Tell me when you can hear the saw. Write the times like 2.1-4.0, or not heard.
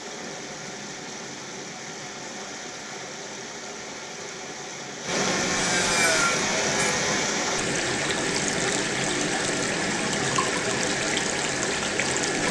5.0-7.3.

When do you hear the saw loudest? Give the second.
6 s.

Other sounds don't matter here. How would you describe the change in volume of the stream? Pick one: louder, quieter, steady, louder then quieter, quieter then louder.
louder.